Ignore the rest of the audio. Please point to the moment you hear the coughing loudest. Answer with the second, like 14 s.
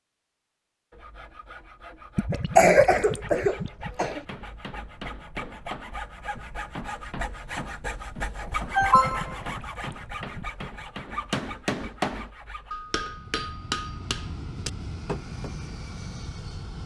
3 s.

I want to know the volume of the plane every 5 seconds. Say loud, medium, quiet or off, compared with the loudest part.
off, off, loud, loud.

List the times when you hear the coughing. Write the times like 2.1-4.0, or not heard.
2.3-4.2, 8.7-9.4.